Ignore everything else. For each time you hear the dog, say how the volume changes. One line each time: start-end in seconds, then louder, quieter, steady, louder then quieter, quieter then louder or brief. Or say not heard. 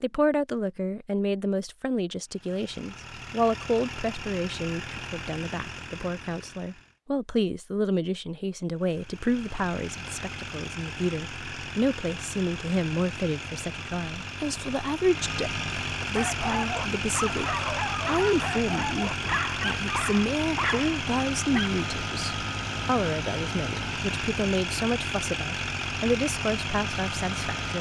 16.1-21.7 steady.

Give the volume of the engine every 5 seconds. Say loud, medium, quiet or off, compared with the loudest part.
medium, medium, medium, loud, loud, loud.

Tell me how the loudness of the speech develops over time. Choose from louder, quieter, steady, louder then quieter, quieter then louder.
steady.